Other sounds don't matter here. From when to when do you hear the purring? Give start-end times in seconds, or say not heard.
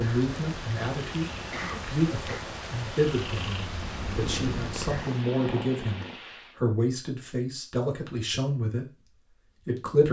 0.0-6.2.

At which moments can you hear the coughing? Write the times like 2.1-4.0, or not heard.
1.5-2.5.